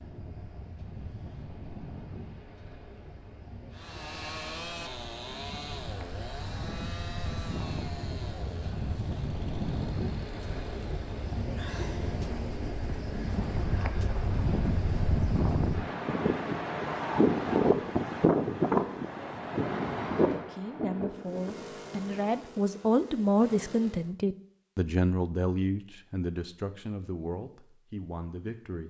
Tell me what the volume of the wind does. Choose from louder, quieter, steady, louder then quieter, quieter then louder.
louder.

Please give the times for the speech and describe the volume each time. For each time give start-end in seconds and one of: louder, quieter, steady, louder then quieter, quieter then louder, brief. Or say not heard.
20.3-28.8 louder then quieter.